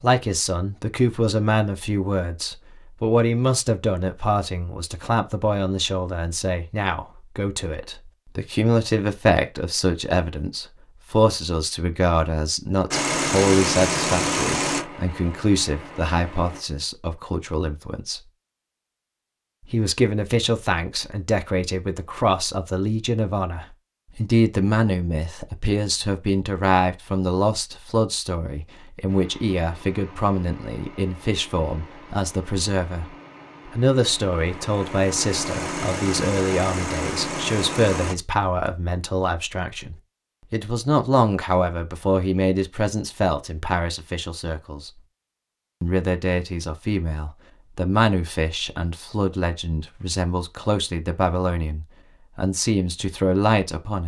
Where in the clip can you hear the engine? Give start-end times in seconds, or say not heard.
12.9-16.6, 29.1-38.1.